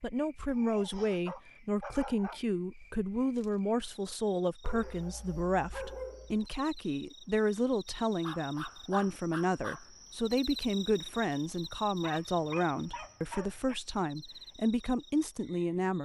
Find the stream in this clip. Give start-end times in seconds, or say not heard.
not heard.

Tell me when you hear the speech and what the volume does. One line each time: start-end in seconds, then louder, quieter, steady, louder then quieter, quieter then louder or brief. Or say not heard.
0.0-16.0 steady.